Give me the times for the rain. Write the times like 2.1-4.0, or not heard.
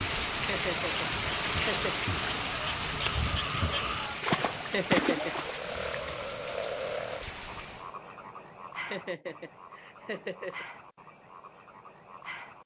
0.0-8.0.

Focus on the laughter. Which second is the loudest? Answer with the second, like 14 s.
5 s.